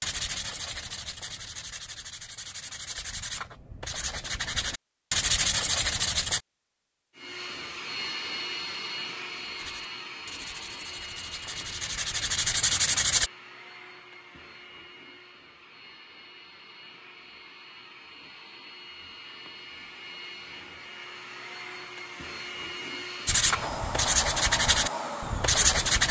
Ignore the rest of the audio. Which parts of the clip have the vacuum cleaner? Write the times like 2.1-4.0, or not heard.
7.2-26.0.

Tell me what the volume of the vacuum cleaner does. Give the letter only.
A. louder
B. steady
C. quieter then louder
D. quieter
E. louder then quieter
C.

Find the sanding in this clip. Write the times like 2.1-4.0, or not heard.
0.0-6.4, 9.6-13.3, 23.2-26.0.